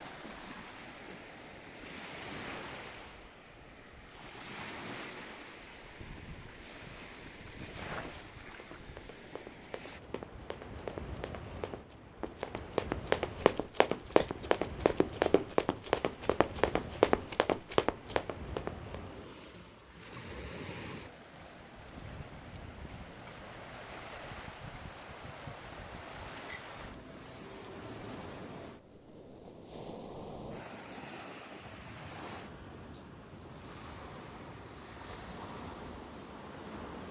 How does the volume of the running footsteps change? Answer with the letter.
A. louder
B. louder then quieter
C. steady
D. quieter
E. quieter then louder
A.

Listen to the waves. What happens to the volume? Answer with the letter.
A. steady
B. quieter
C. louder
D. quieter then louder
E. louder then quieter
A.